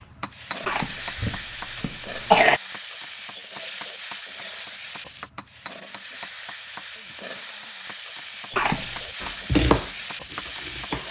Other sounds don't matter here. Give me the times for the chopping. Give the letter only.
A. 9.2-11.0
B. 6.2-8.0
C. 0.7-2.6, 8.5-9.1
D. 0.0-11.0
A.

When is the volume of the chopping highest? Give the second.
10 s.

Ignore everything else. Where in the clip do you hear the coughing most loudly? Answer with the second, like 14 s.
2 s.